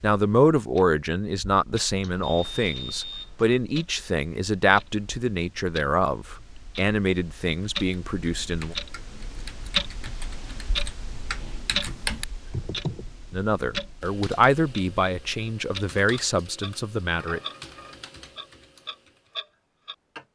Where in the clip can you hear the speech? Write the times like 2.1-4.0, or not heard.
0.0-8.8, 13.3-17.4.